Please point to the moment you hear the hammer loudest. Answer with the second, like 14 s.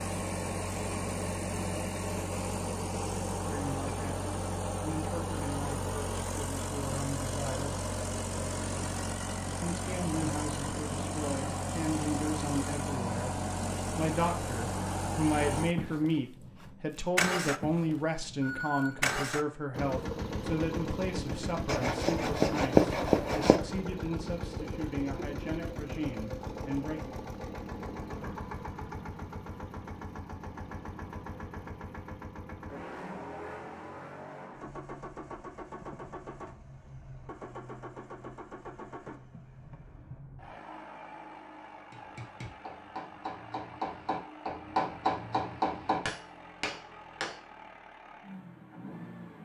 45 s.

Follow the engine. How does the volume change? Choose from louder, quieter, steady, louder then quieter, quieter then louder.
quieter.